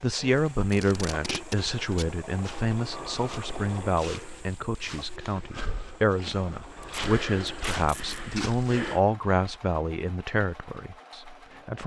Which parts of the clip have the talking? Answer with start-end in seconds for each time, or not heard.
0.0-11.8.